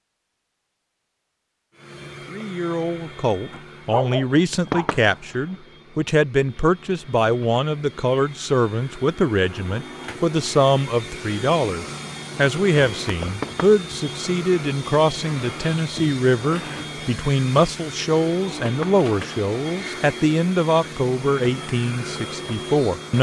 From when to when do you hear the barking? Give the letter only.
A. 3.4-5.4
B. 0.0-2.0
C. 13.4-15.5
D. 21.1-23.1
A.